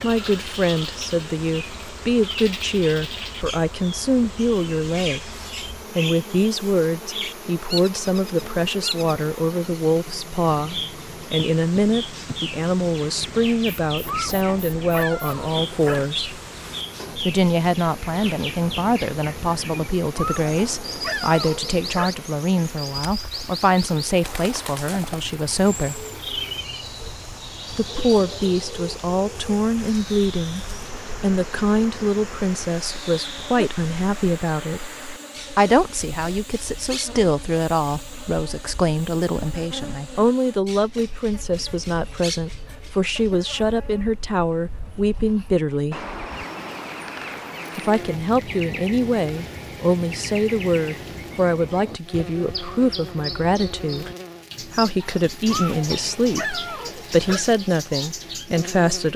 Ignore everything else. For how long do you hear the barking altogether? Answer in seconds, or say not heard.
6 s.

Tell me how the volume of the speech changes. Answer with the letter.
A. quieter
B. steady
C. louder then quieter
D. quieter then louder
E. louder
B.